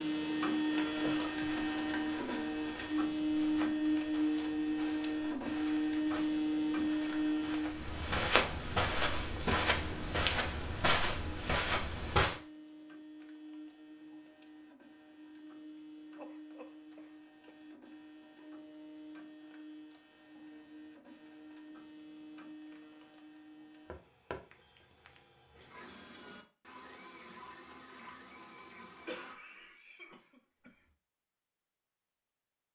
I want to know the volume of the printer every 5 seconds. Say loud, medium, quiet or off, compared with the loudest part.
loud, loud, quiet, quiet, quiet, quiet, off.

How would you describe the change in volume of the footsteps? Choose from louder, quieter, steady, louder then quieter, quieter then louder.
louder.